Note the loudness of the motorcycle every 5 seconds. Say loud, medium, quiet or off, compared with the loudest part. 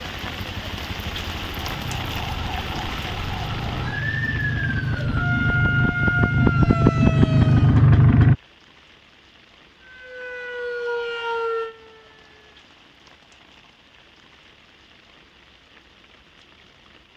quiet, loud, off, off.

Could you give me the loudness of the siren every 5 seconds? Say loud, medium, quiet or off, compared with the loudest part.
medium, loud, loud, off.